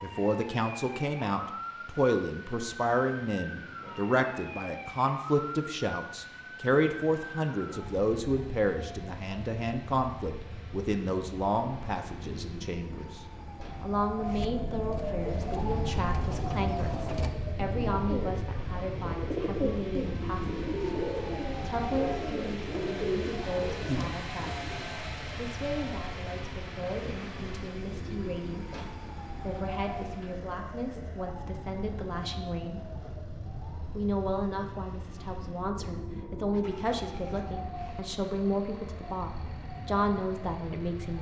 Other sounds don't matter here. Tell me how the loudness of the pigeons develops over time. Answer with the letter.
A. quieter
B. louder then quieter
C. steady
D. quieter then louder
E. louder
E.